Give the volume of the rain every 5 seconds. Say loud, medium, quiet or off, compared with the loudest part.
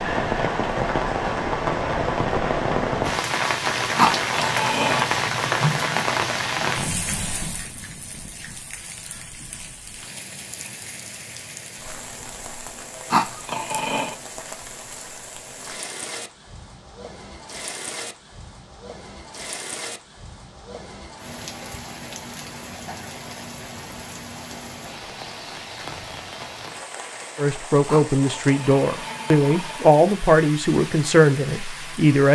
loud, loud, quiet, quiet, quiet, quiet, quiet.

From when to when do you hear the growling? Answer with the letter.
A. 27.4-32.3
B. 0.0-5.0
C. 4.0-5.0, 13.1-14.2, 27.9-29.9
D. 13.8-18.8
C.